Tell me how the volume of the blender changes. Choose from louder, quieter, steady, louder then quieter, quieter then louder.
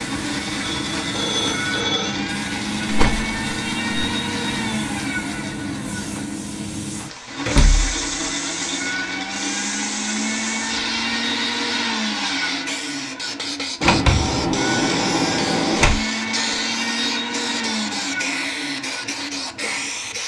steady.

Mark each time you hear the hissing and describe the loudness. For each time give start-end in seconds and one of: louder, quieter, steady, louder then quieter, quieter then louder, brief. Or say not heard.
0.0-20.2 steady.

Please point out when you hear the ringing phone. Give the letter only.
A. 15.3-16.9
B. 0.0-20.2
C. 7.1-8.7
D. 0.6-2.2
D.